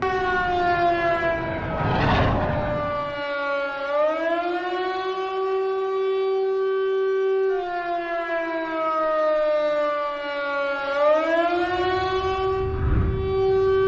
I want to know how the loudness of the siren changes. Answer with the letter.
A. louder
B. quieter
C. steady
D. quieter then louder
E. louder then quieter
C.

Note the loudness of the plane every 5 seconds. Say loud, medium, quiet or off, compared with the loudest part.
loud, off, medium.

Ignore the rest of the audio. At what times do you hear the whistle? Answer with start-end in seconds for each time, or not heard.
not heard.